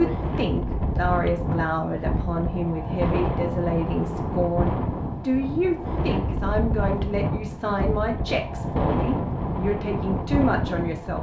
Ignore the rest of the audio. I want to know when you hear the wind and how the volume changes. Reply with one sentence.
The wind can be heard from 0.0 to 11.1 s, at a steady volume.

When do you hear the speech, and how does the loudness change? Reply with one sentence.
You can hear the speech from 0.0 to 11.1 s, at a steady volume.